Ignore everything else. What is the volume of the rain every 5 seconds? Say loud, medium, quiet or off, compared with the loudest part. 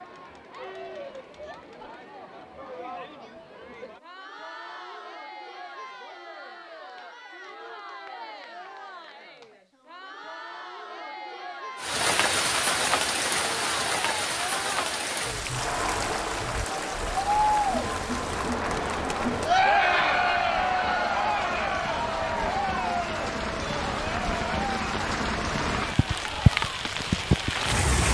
off, off, loud, medium, medium, loud.